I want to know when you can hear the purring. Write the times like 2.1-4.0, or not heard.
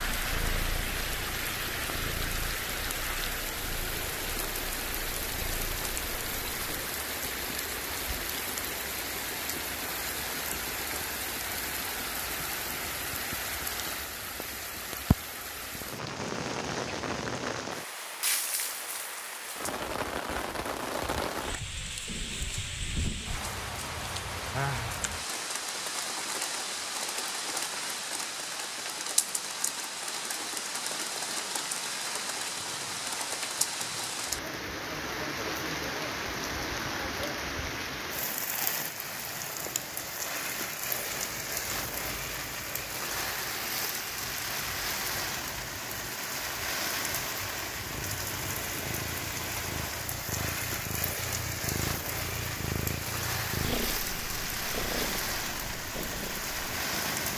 0.0-6.9, 47.8-57.3.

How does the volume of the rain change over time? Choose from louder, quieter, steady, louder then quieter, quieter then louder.
steady.